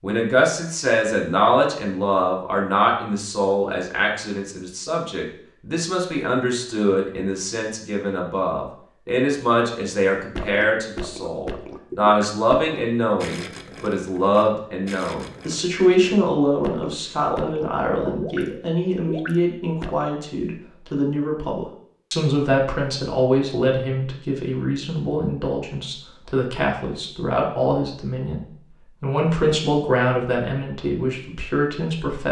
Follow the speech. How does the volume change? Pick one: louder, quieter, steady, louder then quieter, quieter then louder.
steady.